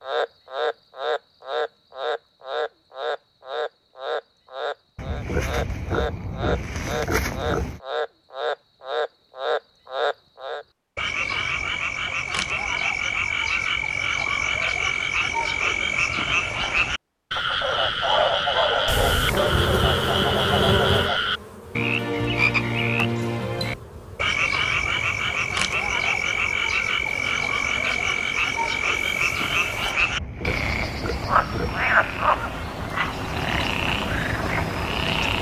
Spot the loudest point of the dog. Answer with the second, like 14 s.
18 s.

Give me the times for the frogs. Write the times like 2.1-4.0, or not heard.
0.0-35.3.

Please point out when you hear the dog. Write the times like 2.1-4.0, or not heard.
17.7-19.6.